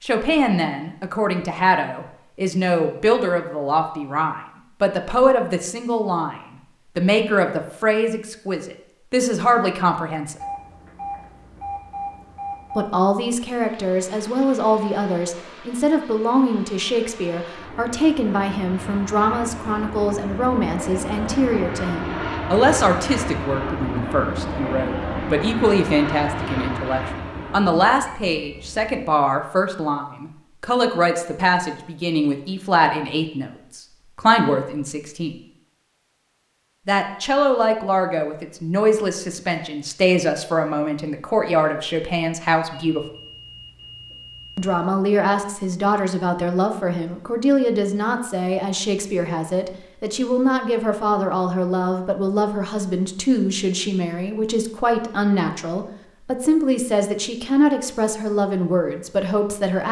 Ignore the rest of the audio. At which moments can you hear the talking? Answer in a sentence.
You can hear the talking from 0.0 to 10.3 s, from 12.8 to 35.4 s, from 36.9 to 43.0 s and from 44.5 to 59.8 s.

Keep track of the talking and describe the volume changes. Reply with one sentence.
The volume of the talking stays about the same.